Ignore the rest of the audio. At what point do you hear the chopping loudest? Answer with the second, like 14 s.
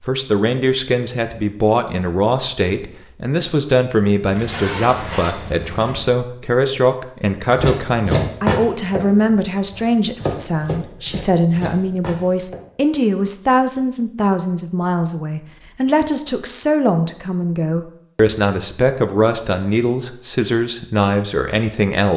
8 s.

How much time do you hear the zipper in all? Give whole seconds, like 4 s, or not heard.
2 s.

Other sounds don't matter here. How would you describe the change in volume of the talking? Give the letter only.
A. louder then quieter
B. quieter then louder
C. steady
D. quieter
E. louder
C.